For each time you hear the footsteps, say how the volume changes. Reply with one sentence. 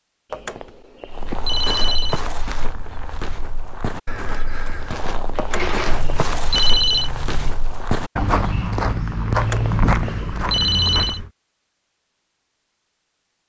The footsteps can be heard from 1.1 to 11.3 s, getting louder.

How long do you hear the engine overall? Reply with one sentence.
The engine can be heard for 2 seconds in total.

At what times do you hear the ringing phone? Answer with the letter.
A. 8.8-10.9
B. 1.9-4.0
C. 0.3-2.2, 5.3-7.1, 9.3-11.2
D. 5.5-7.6
C.